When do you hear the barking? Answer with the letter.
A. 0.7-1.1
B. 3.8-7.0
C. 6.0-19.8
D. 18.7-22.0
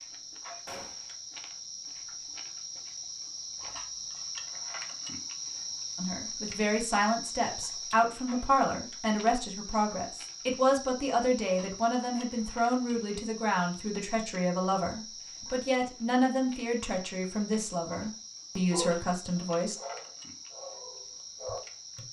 D.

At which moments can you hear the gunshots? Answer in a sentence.
The gunshots can be heard from 0.7 to 1.1 s.